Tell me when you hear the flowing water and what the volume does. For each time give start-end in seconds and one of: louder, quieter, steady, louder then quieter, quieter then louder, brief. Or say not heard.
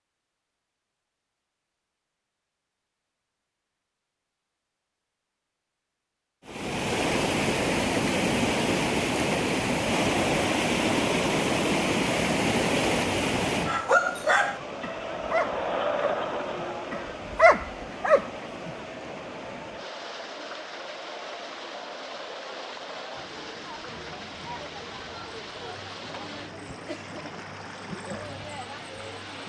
6.5-29.4 quieter.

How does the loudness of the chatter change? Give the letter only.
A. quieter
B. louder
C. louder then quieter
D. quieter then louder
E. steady
A.